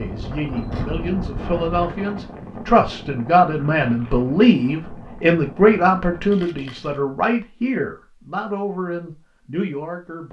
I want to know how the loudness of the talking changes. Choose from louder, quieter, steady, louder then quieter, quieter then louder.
louder then quieter.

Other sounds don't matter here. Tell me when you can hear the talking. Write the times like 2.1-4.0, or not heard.
0.0-10.2.